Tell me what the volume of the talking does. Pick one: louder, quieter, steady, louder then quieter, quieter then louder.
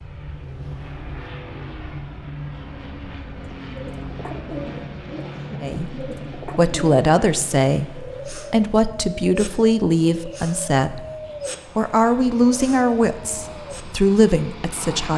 steady.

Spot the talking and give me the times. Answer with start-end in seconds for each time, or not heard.
5.6-11.0, 11.8-15.1.